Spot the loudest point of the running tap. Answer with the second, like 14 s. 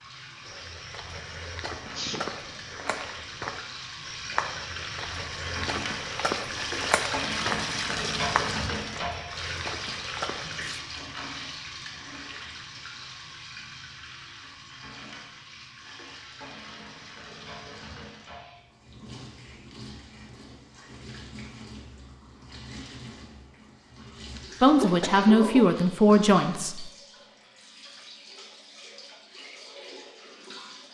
8 s.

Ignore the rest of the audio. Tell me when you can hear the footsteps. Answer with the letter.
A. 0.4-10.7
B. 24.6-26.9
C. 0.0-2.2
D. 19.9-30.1
A.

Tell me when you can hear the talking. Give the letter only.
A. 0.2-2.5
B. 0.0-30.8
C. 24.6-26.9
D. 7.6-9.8
C.